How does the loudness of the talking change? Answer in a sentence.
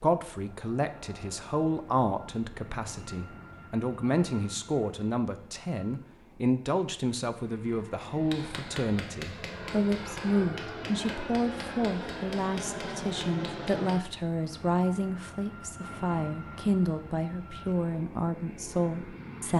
The volume of the talking stays about the same.